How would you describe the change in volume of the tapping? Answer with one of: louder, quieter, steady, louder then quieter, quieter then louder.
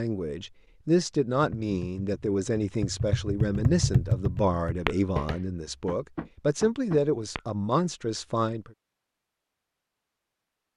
louder then quieter.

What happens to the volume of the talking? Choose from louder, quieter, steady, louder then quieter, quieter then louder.
steady.